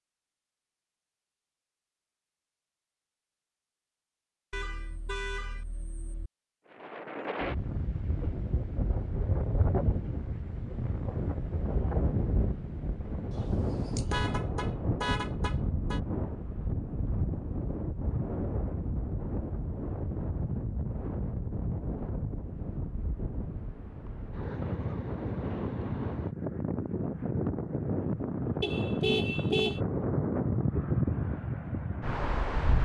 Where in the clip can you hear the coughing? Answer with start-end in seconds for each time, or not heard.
not heard.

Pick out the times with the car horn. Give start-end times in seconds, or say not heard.
4.5-6.3, 13.3-16.0, 28.6-29.8.